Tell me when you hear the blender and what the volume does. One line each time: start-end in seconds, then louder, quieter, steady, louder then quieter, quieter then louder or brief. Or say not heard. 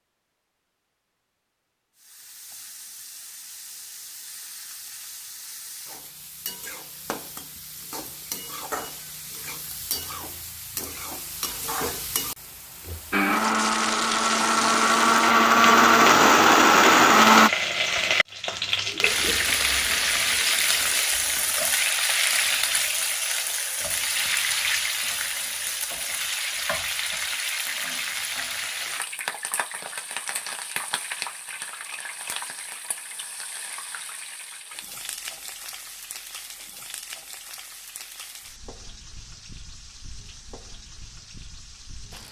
13.1-17.5 louder.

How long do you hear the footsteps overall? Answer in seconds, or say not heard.
not heard.